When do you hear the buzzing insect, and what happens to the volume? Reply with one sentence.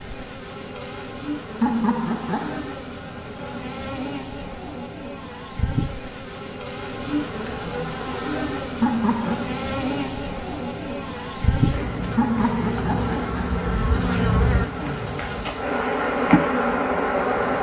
The buzzing insect can be heard from 0.0 to 17.5 s, getting louder.